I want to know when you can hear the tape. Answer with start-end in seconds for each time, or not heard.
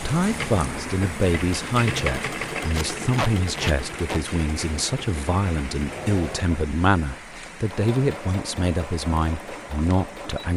2.7-4.2.